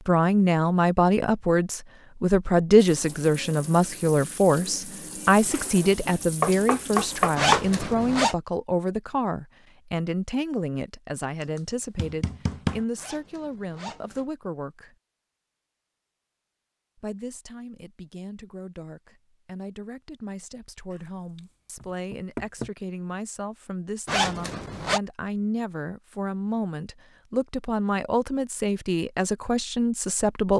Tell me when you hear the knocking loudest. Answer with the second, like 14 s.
7 s.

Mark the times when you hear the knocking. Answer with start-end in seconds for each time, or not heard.
6.4-7.7, 11.6-12.8, 20.9-22.7.